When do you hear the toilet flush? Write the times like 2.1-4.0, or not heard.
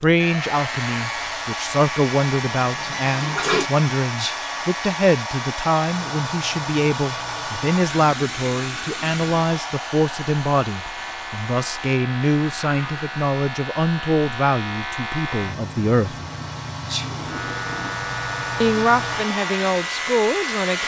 2.5-3.7, 7.8-9.3, 17.0-18.0.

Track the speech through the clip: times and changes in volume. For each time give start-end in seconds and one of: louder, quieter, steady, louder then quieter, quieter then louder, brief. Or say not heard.
0.0-16.1 steady
18.6-20.8 brief.